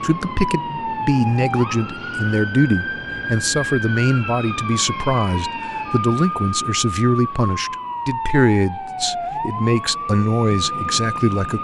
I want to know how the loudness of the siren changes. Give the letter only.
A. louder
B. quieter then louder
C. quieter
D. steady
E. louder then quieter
D.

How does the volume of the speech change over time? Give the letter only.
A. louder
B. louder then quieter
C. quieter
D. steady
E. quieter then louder
D.